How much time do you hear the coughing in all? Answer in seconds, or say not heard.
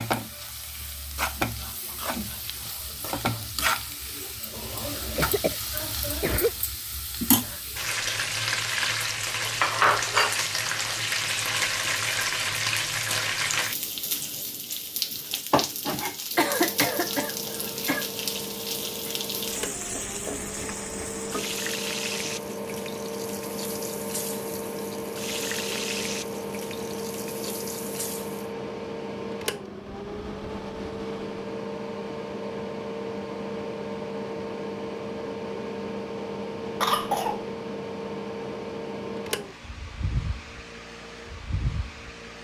4 s.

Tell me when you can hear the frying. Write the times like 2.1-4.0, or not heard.
0.0-28.4.